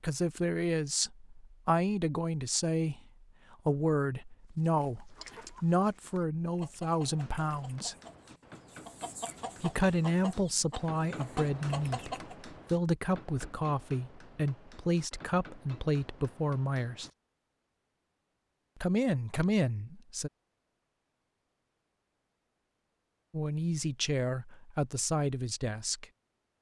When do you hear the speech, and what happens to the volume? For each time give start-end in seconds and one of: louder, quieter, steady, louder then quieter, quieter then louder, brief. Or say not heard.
0.0-8.0 steady
9.6-17.1 steady
18.8-20.3 brief
23.3-26.1 brief.